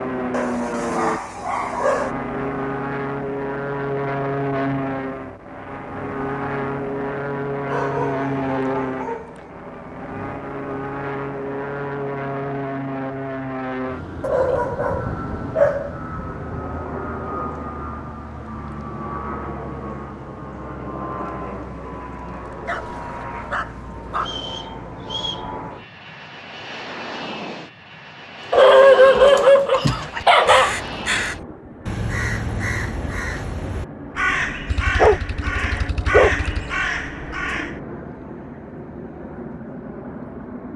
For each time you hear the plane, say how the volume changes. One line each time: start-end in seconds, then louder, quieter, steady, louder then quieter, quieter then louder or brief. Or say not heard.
0.0-40.7 quieter.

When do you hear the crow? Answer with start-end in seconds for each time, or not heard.
28.4-37.8.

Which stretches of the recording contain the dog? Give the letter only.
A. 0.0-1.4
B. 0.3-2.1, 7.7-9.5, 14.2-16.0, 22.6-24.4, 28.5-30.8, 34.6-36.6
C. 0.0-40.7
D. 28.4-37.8
B.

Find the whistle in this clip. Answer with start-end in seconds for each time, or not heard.
24.1-25.5.